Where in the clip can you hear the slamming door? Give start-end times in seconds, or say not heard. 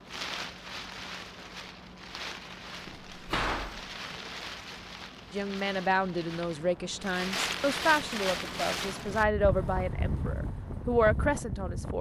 2.9-3.9.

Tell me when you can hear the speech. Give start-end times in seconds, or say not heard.
5.3-11.9.